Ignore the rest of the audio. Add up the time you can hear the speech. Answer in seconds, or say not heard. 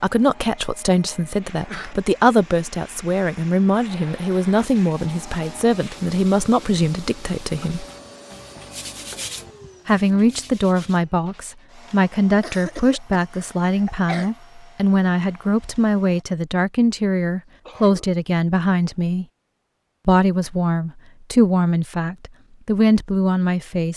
21 s.